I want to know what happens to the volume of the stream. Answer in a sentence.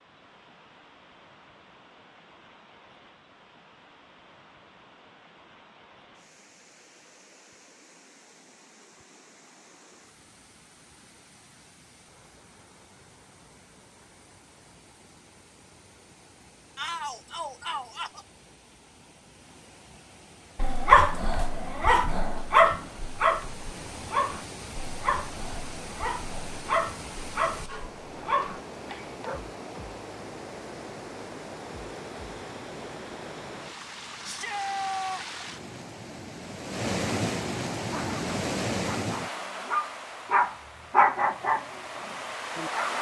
The loudness of the stream goes up.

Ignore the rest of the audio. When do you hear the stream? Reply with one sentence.
The stream can be heard from 0.0 to 42.9 s.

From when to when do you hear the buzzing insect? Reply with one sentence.
You can't hear the buzzing insect here.